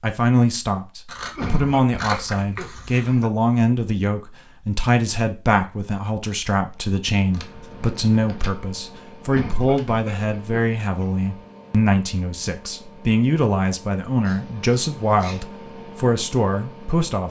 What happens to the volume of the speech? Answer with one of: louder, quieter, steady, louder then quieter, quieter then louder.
steady.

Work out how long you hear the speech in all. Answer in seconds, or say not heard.
17 s.